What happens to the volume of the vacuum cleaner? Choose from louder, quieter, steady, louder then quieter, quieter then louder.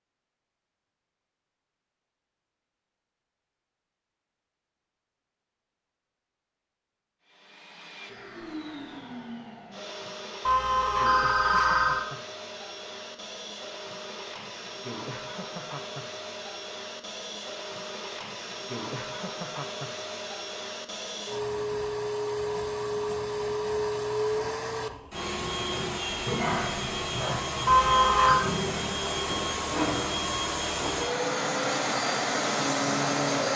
louder.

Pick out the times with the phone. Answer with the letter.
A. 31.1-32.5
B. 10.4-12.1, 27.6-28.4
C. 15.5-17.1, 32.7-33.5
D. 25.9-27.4
B.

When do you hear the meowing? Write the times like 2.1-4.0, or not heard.
25.9-27.4.